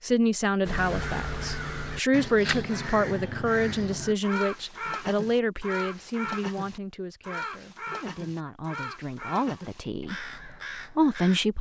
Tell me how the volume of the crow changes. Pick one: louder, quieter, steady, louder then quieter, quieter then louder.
quieter.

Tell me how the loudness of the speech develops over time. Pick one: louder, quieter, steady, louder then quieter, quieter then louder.
quieter then louder.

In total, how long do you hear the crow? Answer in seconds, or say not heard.
11 s.